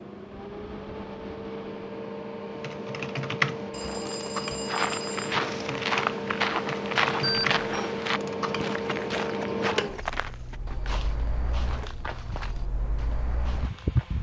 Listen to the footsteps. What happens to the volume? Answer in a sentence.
The loudness of the footsteps goes down.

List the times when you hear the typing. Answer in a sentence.
The typing can be heard from 2.5 to 8.8 s.